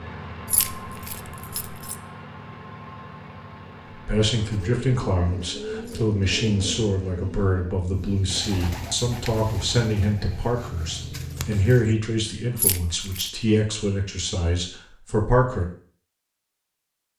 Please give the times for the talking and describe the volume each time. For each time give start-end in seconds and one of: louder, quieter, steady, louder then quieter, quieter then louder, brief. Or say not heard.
4.0-15.7 steady.